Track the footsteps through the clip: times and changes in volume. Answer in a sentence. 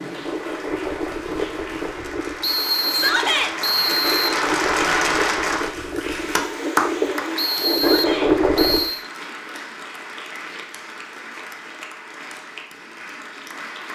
You can't hear the footsteps here.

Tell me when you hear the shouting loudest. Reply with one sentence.
The loudest moment of the shouting is at 3 seconds.